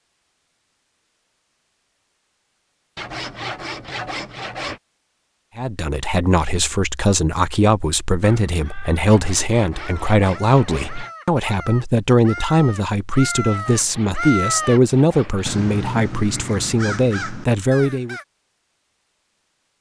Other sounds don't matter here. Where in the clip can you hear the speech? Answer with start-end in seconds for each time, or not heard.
5.5-18.1.